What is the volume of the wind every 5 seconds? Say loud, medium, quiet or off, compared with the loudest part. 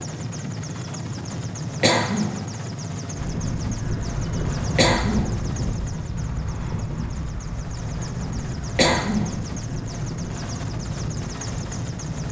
loud, loud, medium.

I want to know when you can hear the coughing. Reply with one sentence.
You can hear the coughing from 1.8 to 2.4 s, from 4.8 to 5.3 s and from 8.8 to 9.3 s.